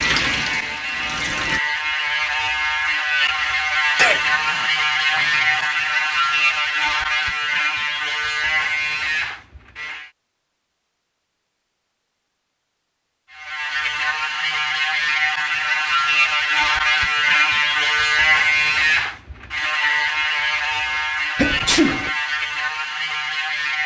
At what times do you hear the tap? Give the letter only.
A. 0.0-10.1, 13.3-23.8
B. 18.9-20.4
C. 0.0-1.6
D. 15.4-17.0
C.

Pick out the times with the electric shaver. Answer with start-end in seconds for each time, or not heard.
0.0-10.1, 13.3-23.8.